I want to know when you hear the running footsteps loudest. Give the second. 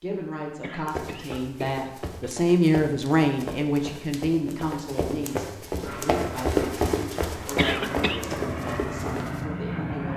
7 s.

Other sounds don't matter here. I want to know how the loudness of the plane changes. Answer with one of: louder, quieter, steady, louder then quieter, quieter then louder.
louder.